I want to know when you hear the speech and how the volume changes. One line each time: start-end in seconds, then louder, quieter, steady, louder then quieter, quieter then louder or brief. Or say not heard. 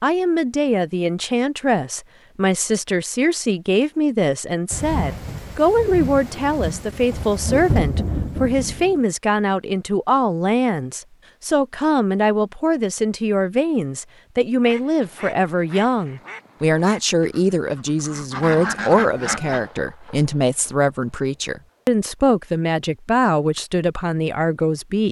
0.0-25.0 steady.